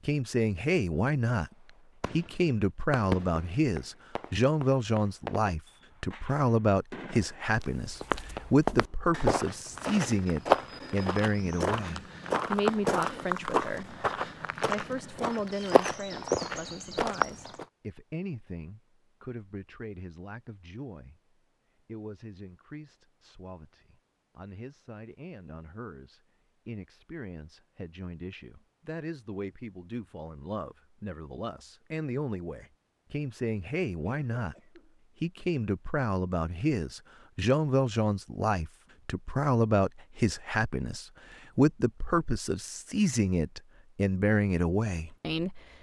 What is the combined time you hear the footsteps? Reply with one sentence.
The footsteps can be heard for 10 seconds in total.